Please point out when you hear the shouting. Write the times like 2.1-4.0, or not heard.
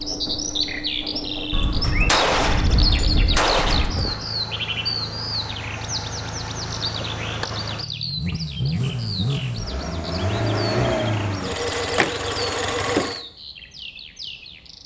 not heard.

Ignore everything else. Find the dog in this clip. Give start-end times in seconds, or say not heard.
not heard.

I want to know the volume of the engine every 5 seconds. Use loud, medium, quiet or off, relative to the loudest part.
medium, medium, loud.